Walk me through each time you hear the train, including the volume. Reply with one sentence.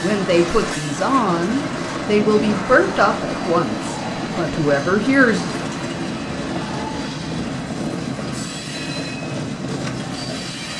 You can hear the train from 0.0 to 10.7 s, at a steady volume.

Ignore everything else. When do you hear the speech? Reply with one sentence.
You can hear the speech from 0.0 to 5.7 s.